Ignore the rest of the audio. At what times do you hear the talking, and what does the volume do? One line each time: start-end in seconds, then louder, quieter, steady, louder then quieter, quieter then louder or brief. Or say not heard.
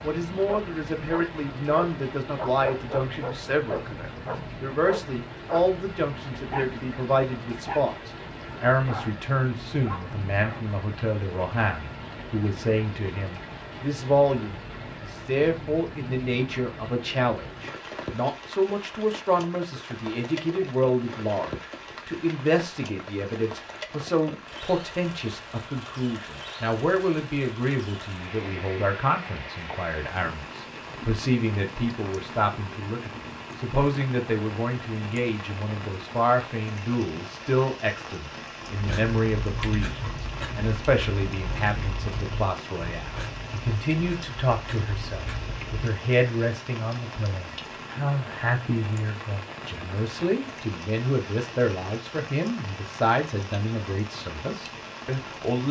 0.0-55.6 steady.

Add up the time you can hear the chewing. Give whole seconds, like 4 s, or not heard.
7 s.